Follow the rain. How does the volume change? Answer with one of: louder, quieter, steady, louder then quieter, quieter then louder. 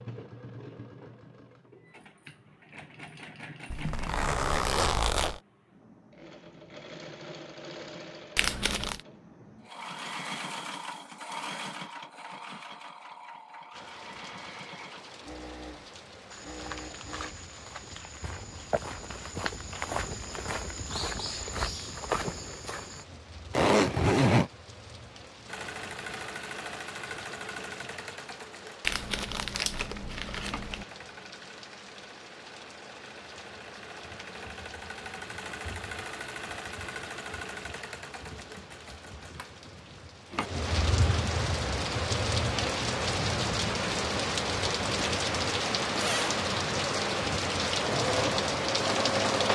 louder.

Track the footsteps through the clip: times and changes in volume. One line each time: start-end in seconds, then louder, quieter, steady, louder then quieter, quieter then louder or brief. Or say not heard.
16.3-23.1 louder.